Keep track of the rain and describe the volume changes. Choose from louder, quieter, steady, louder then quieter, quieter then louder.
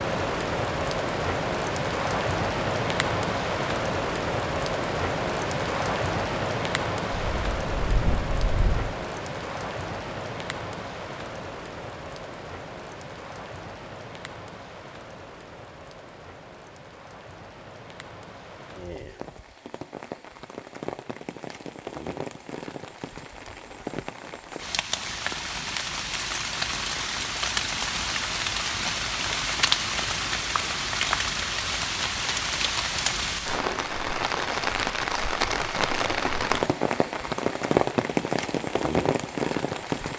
quieter then louder.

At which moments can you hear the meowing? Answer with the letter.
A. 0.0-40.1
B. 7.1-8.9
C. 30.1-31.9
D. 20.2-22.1
B.